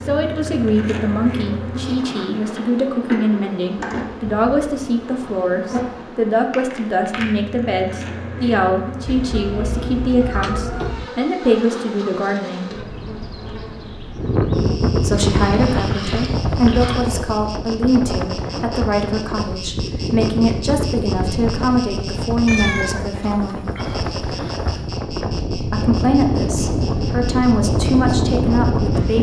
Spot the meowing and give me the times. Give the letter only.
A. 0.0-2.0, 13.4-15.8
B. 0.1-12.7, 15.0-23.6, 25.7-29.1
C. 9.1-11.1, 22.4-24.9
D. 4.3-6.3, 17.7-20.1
C.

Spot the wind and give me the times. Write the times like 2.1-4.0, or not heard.
14.2-29.1.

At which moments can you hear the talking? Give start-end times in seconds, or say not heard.
0.1-12.7, 15.0-23.6, 25.7-29.1.